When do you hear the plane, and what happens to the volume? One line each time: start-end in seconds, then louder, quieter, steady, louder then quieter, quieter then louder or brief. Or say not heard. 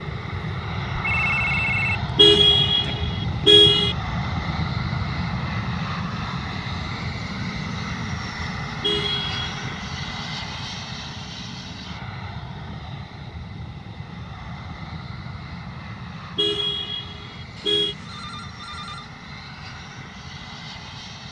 0.0-21.2 quieter.